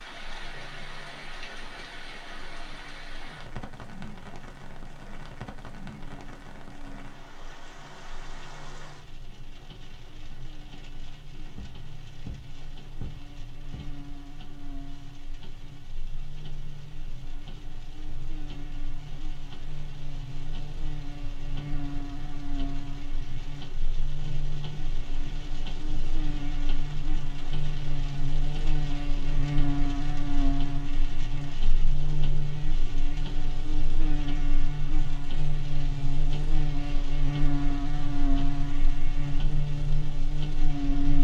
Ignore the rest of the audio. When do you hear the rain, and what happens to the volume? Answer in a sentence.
You can hear the rain from 0.0 to 41.2 s, getting quieter then louder.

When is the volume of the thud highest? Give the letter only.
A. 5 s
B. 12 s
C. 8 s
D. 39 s
B.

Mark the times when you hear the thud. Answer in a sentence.
The thud can be heard from 11.6 to 14.0 s.